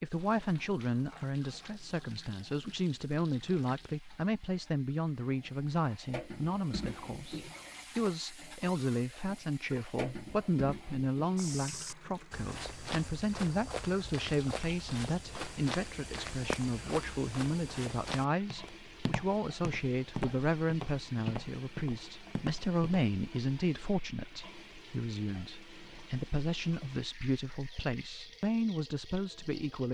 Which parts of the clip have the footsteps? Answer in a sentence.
You can hear the footsteps from 11.3 to 23.1 s.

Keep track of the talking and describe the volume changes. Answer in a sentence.
The volume of the talking stays about the same.